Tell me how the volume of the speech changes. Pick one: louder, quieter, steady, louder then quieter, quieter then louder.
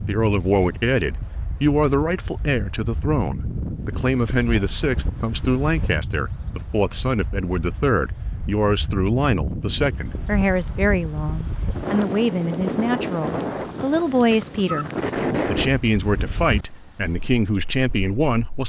steady.